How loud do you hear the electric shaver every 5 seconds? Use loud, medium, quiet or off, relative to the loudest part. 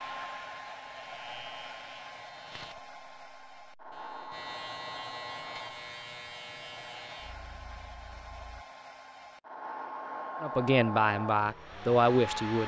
loud, loud, off.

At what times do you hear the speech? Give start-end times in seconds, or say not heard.
10.4-12.6.